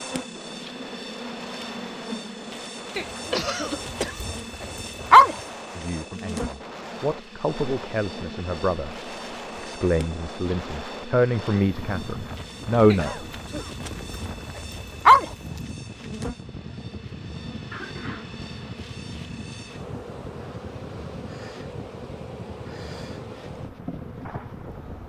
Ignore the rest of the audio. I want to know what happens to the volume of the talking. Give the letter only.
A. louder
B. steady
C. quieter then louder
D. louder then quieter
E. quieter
A.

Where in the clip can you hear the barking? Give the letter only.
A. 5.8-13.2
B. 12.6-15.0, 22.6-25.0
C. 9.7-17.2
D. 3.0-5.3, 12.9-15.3
D.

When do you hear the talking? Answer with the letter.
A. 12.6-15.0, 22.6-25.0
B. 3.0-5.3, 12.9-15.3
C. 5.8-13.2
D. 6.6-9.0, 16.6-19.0
C.